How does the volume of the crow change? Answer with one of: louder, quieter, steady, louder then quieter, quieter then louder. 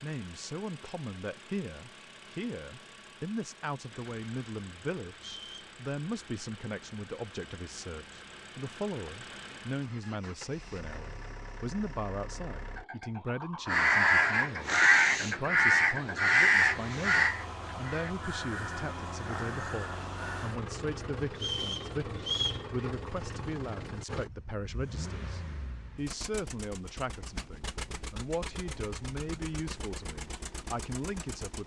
quieter.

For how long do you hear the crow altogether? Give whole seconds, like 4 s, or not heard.
7 s.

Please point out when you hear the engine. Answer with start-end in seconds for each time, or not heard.
0.0-31.6.